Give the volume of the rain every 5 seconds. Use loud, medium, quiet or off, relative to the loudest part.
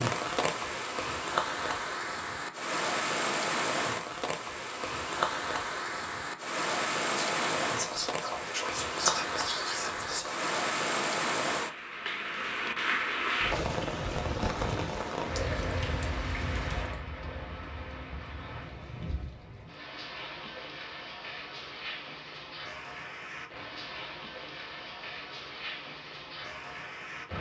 loud, loud, loud, medium, medium, medium.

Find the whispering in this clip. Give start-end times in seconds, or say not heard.
7.3-10.4.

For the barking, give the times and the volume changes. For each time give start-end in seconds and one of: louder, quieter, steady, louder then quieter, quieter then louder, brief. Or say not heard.
not heard.